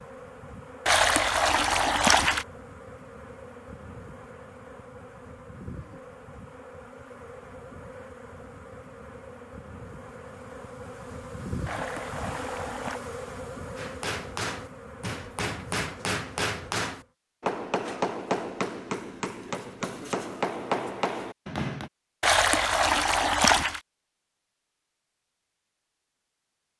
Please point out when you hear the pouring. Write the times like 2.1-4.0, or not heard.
0.8-2.5, 11.7-13.0, 22.2-23.8.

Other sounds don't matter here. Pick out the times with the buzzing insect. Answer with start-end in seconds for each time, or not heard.
0.0-17.1.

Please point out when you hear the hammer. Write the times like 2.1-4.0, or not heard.
13.8-21.9.